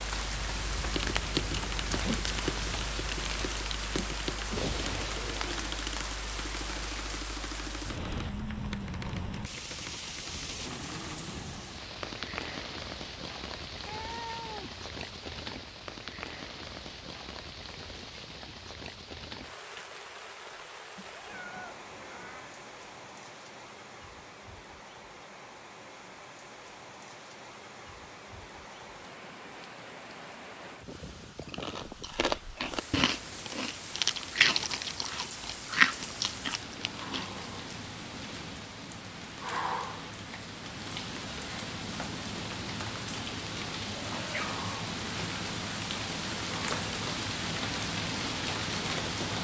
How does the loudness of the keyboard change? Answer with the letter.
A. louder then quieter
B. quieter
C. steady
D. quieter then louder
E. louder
B.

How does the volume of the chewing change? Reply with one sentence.
The loudness of the chewing goes up, then down.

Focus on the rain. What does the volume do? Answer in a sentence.
The volume of the rain goes down, then up.